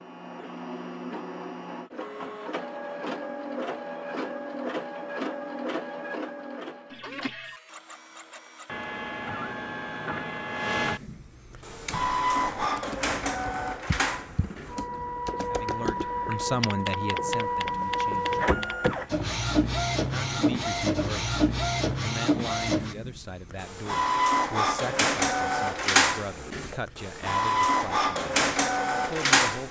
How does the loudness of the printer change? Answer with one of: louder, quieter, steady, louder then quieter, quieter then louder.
louder.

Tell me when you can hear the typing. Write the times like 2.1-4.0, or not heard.
11.6-18.9.